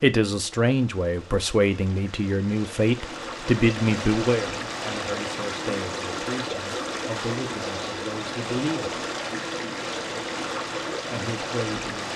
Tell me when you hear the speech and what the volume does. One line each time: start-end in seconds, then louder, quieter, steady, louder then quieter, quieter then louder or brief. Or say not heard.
0.0-9.0 quieter
11.0-12.1 brief.